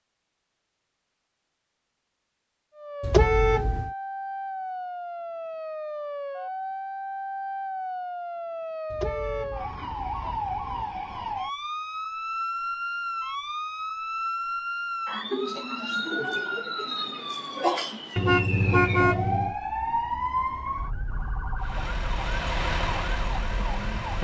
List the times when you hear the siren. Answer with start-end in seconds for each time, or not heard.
2.8-24.2.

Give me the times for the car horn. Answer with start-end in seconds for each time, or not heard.
3.0-3.9, 8.9-10.8, 18.1-19.6.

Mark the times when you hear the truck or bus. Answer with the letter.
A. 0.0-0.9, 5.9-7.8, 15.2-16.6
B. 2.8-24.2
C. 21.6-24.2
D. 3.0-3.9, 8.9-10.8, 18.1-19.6
C.